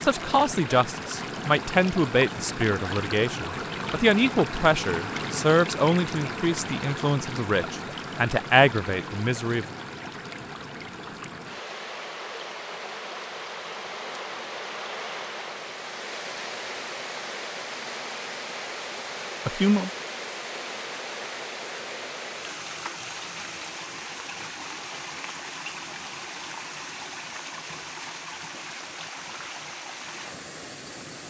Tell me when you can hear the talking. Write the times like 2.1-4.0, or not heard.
0.0-9.7, 19.4-19.9.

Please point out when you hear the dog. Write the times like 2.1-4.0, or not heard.
not heard.